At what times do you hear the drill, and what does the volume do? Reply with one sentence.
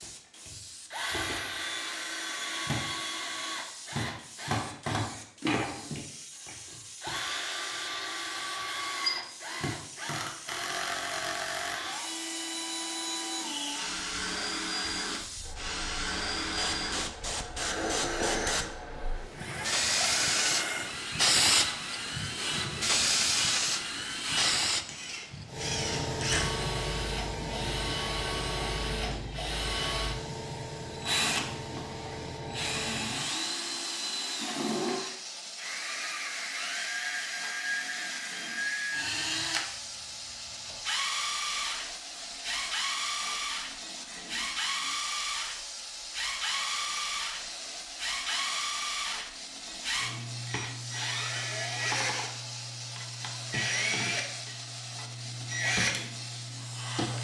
The drill can be heard from 0.0 to 57.1 s, at a steady volume.